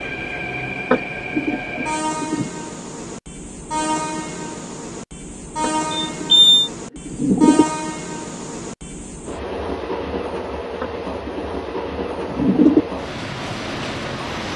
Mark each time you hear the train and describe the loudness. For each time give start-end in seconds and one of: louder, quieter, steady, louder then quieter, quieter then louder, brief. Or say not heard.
0.0-14.5 steady.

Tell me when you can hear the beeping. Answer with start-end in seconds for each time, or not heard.
5.9-6.7.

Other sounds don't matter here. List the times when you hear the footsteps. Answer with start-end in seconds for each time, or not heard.
not heard.